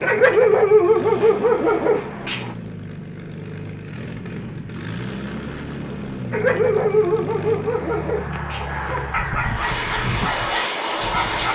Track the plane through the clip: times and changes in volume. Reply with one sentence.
The plane can be heard from 0.0 to 11.5 s, getting louder.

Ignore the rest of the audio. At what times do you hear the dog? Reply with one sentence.
You can hear the dog from 0.0 to 2.5 s and from 6.3 to 11.5 s.